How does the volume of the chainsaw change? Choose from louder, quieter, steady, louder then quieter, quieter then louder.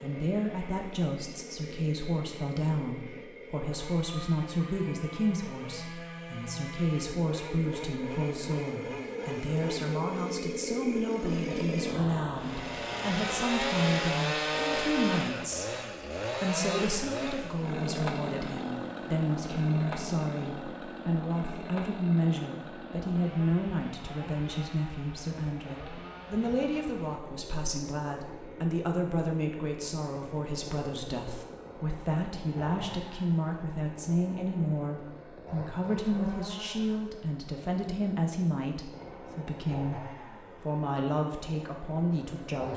louder then quieter.